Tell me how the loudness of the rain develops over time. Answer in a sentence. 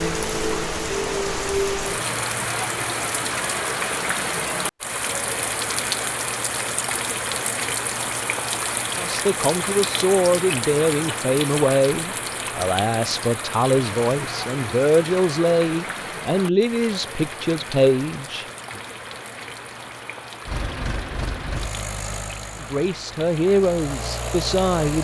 The loudness of the rain goes down.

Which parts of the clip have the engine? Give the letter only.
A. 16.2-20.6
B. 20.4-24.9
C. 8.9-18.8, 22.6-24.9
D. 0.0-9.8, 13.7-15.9
B.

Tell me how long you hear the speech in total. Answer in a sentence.
You can hear the speech for 12 seconds altogether.